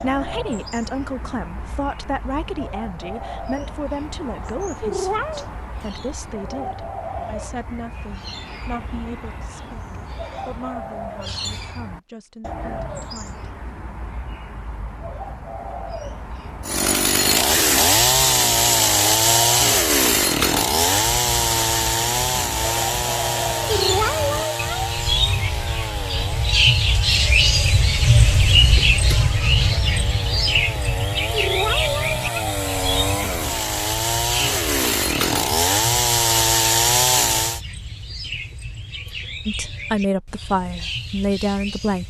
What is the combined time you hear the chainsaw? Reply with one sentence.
You can hear the chainsaw for 21 seconds altogether.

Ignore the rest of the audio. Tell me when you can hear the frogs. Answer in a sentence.
The frogs can't be heard in this clip.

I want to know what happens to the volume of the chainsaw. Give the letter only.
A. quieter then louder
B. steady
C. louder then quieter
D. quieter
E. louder
A.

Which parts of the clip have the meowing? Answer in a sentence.
You can hear the meowing from 4.8 to 5.5 s, from 23.6 to 24.9 s and from 31.3 to 32.5 s.